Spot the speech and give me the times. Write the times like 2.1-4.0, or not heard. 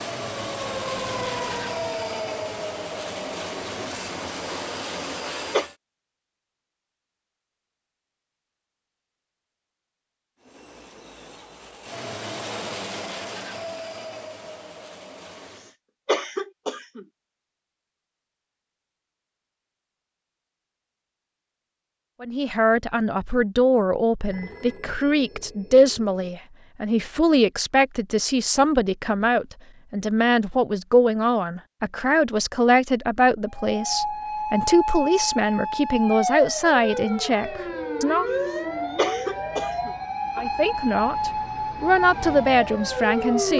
22.2-38.2, 40.4-43.5.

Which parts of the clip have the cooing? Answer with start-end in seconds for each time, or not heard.
not heard.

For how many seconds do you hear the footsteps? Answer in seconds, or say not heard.
not heard.